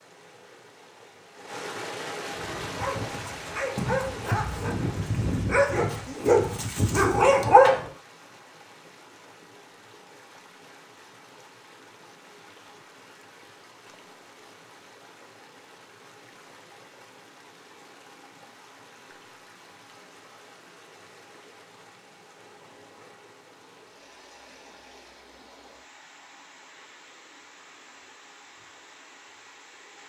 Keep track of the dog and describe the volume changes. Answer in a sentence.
The loudness of the dog goes up.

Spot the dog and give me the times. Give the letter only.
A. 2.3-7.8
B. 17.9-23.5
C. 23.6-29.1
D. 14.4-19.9
A.